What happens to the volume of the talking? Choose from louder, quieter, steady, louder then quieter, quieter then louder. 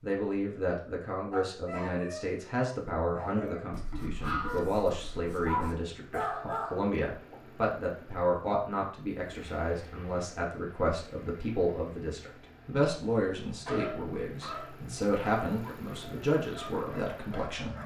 steady.